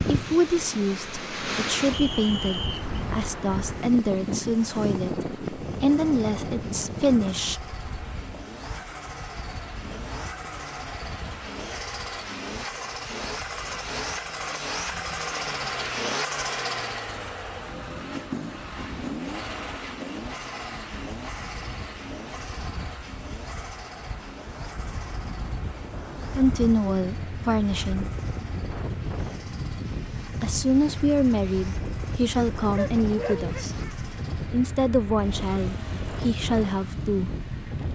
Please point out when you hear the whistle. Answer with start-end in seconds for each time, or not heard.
1.9-2.9.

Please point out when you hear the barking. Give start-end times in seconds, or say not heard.
32.5-34.0.